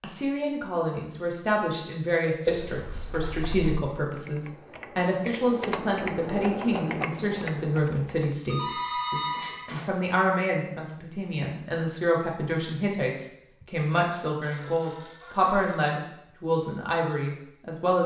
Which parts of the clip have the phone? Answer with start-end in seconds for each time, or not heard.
2.5-3.8, 8.4-9.9, 14.4-15.8.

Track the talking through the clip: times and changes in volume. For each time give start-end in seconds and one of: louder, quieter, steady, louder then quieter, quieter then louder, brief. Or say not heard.
0.0-18.0 steady.